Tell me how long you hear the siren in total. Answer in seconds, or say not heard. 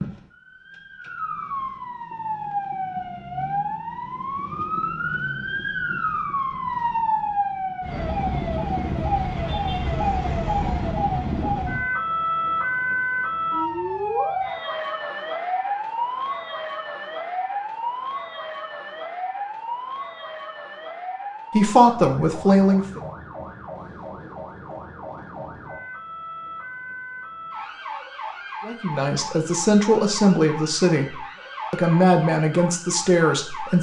34 s.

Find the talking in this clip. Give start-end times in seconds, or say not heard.
21.5-23.0, 28.6-33.7.